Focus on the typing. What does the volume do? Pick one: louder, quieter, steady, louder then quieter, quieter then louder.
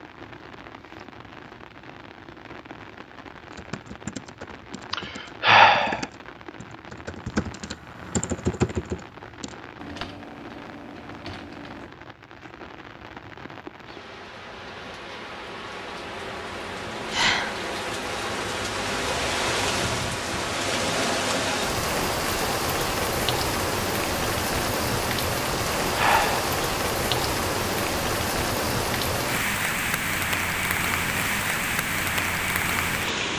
louder then quieter.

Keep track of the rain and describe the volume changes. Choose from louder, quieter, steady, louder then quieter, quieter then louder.
louder.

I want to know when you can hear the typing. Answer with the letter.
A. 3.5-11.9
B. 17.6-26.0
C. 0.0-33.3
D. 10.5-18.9
A.